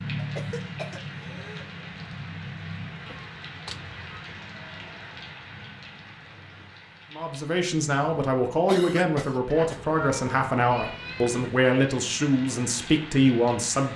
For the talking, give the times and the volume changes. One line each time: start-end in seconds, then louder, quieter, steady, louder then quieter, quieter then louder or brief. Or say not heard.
7.1-13.9 steady.